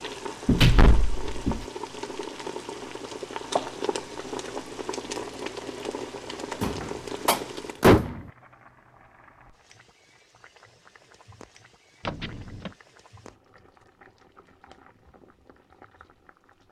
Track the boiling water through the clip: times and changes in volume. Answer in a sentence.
You can hear the boiling water from 0.0 to 16.6 s, getting quieter.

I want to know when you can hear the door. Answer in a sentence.
The door can be heard from 0.5 to 1.6 s, from 6.6 to 8.2 s and from 12.1 to 12.7 s.